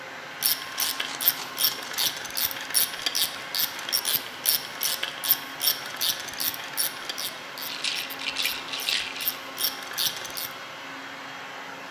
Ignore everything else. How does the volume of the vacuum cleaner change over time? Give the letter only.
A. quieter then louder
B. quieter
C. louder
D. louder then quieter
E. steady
E.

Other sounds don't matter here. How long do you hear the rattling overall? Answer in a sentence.
You can hear the rattling for 3 seconds altogether.